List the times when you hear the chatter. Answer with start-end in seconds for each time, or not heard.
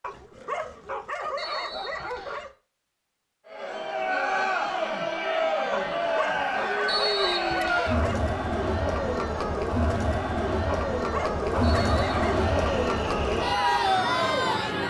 3.5-14.8.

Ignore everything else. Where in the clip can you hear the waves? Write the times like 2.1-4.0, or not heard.
not heard.